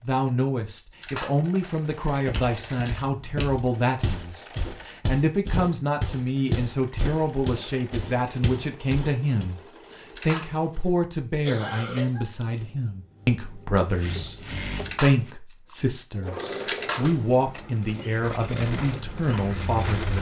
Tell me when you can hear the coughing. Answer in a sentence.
You can hear the coughing from 11.4 to 12.3 s.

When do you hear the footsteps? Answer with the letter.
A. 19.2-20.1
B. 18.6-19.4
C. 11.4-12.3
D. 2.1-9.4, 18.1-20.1
D.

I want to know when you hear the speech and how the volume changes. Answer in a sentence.
You can hear the speech from 0.0 to 20.1 s, at a steady volume.